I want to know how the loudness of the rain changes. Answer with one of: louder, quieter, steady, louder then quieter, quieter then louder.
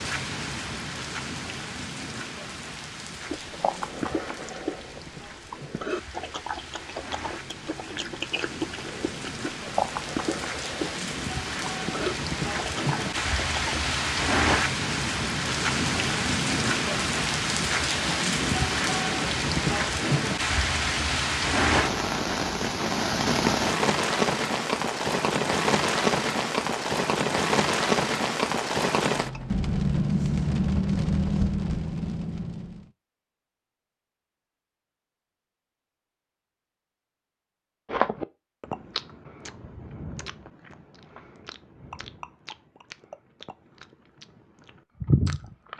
louder.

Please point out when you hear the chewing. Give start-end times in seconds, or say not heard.
3.3-13.8, 37.9-45.7.